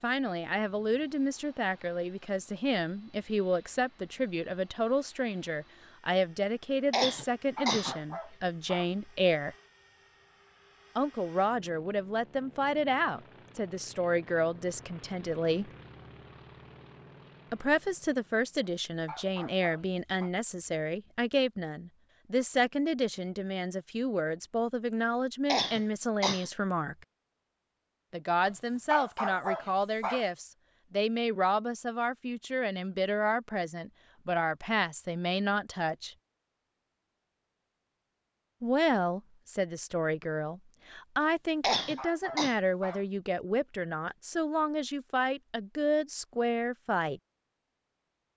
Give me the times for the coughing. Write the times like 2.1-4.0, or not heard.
6.9-8.0, 25.4-26.5, 41.6-42.5.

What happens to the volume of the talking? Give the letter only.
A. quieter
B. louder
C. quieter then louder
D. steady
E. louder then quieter
D.